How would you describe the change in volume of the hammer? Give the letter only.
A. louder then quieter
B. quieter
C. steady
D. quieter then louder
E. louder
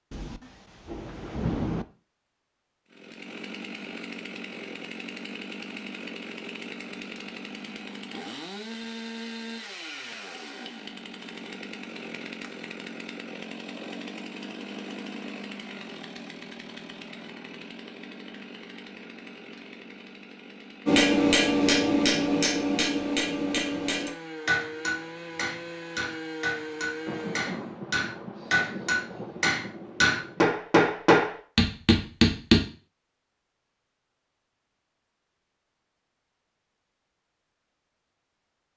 D.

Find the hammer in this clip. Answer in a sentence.
You can hear the hammer from 20.9 to 32.6 s.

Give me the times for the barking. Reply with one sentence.
You can't hear the barking here.